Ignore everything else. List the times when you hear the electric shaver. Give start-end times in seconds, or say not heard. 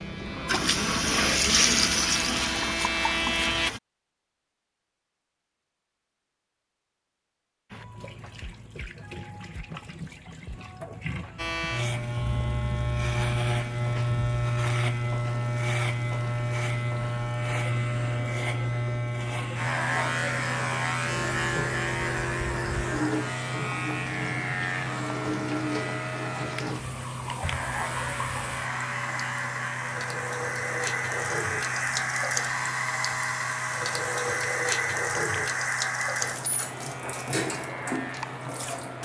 0.0-3.7, 11.3-39.0.